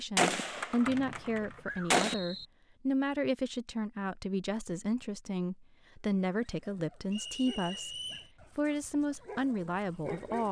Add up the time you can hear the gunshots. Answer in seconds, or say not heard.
2 s.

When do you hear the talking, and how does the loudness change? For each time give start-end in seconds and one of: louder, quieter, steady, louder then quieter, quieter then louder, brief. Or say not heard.
0.0-10.4 steady.